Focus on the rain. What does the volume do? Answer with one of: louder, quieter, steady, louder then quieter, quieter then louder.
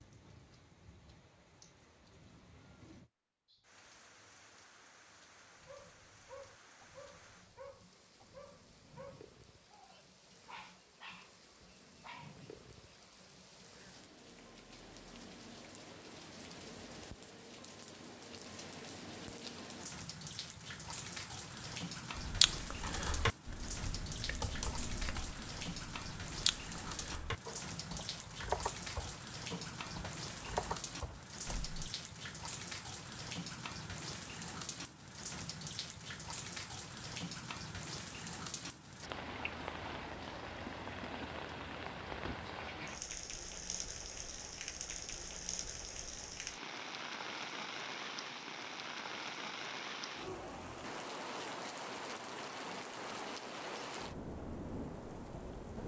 louder.